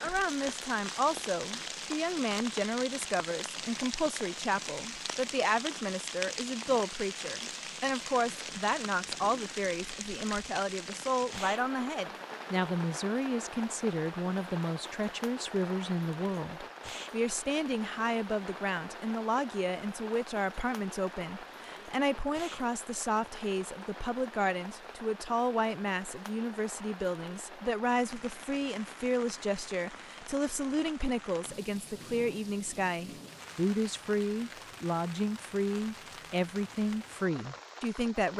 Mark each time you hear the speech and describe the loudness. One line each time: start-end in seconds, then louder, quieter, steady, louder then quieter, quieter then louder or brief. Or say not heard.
0.0-38.3 steady.